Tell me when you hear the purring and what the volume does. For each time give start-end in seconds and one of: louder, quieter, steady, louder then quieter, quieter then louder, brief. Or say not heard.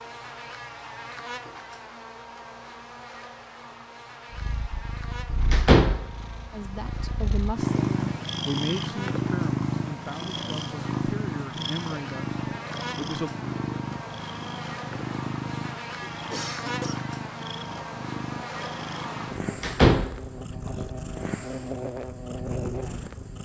4.3-23.4 quieter.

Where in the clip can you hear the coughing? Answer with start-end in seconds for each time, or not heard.
16.2-17.1.